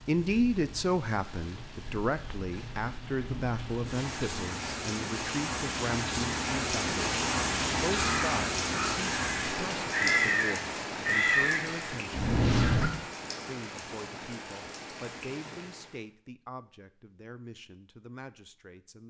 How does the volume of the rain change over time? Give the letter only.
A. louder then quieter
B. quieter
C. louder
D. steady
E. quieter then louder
A.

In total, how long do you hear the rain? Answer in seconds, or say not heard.
16 s.